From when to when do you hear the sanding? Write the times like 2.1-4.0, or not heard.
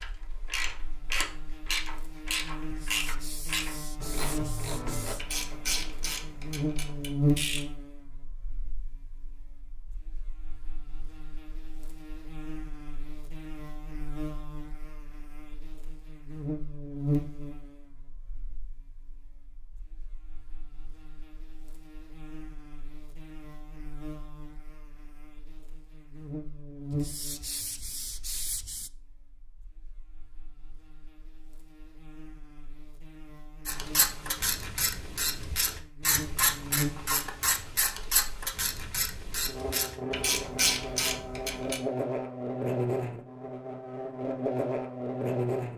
2.6-5.2, 26.9-28.9.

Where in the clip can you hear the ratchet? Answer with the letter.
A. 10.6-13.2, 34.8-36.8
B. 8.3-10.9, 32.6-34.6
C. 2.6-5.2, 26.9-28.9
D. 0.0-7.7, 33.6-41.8
D.